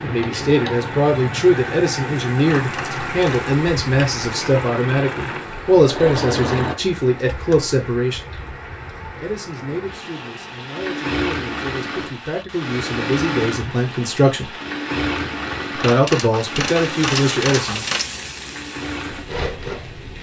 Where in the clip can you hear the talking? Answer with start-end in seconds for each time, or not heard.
0.0-8.3, 9.2-14.6, 15.7-17.9.